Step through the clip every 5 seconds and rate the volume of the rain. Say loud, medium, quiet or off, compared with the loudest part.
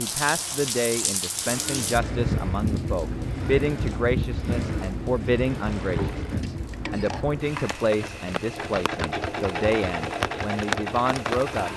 loud, medium, loud.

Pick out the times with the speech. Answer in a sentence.
The speech can be heard from 0.0 to 11.7 s.